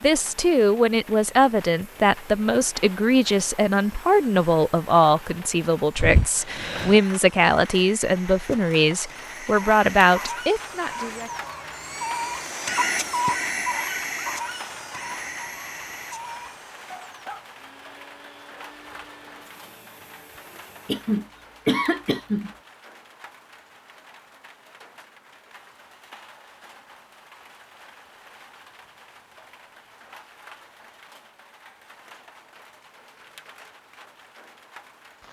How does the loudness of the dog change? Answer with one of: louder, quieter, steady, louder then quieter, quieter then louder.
louder then quieter.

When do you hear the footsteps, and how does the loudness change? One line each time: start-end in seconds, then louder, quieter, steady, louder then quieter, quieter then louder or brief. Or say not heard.
not heard.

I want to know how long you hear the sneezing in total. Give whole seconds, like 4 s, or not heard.
3 s.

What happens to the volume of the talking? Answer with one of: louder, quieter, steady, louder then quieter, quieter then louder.
steady.